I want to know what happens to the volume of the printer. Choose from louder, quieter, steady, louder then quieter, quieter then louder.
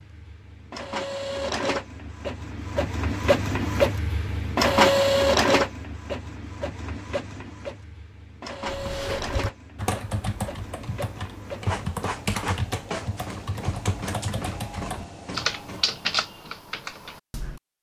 louder then quieter.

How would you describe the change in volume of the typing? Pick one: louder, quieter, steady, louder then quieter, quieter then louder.
steady.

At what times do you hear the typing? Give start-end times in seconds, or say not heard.
8.7-17.6.